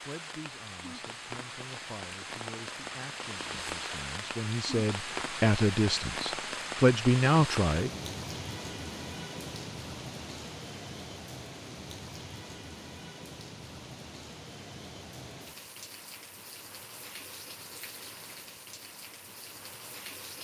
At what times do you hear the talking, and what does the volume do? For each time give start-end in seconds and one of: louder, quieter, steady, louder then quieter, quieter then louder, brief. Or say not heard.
0.0-7.9 louder.